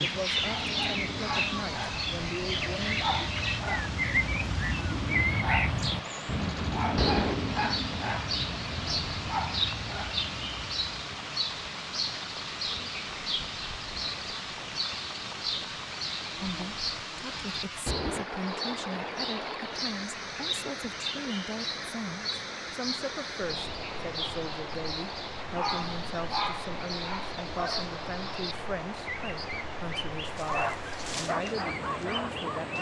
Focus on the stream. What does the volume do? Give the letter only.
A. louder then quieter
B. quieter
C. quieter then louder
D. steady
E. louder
D.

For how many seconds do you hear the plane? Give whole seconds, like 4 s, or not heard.
not heard.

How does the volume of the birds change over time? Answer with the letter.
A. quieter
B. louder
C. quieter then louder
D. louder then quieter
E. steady
A.